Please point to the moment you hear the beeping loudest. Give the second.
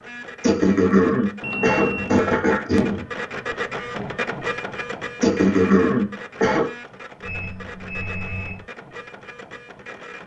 2 s.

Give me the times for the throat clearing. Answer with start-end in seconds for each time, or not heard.
0.4-3.0, 5.2-6.7.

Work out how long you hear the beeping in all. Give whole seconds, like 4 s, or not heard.
2 s.